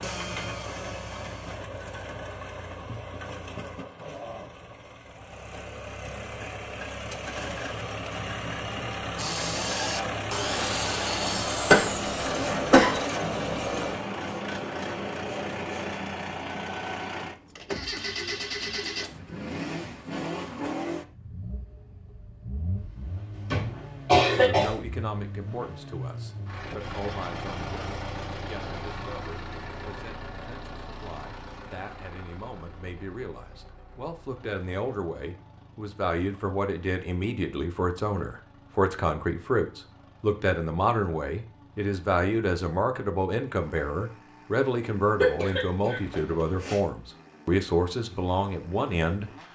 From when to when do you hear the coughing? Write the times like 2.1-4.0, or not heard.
11.7-13.0, 23.4-24.8, 45.1-46.8.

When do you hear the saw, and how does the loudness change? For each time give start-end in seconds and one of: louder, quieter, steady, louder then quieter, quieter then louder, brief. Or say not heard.
0.0-1.6 brief
9.2-16.0 quieter.